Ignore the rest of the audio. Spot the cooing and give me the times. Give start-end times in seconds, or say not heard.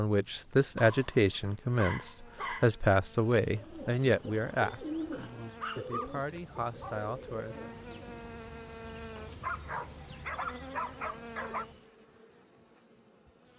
3.4-8.2.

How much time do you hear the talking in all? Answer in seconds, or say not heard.
7 s.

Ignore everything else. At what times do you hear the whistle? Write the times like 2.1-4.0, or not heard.
not heard.